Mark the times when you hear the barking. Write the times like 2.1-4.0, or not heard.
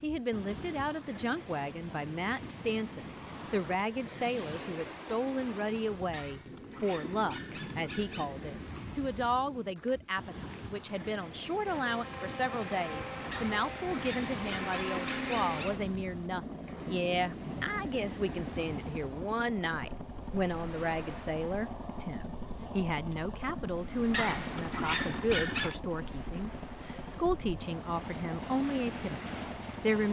6.1-8.3, 13.3-15.8, 24.1-25.9.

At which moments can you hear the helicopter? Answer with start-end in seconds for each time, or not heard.
11.7-30.0.